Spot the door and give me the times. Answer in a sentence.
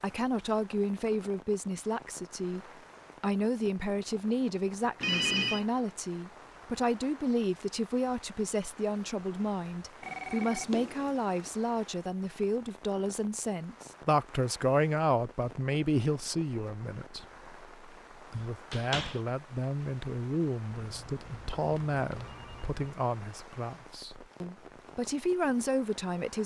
The door can be heard from 18.4 to 19.2 s.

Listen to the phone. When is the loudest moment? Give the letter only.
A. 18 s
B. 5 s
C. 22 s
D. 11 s
B.